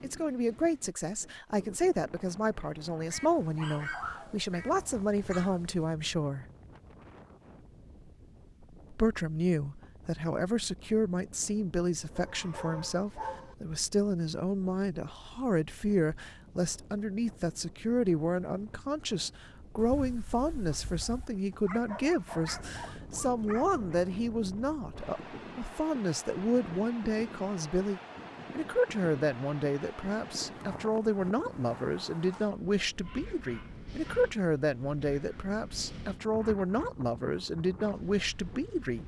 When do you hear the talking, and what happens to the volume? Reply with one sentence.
You can hear the talking from 0.0 to 6.5 s, at a steady volume; and from 8.9 to 39.0 s, at a steady volume.